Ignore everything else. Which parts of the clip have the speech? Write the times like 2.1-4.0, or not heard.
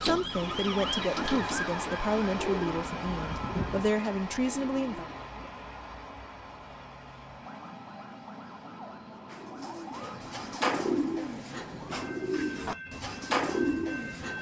0.0-5.0.